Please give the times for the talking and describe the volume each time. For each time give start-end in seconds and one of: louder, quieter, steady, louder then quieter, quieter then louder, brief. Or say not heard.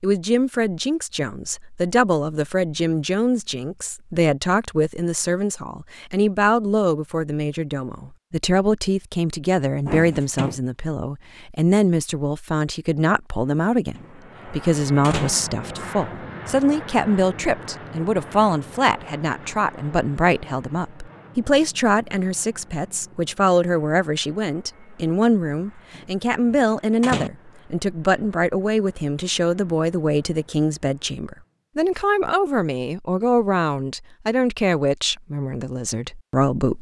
0.0-36.7 steady.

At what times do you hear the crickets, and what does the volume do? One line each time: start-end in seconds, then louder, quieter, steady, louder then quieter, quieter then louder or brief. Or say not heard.
not heard.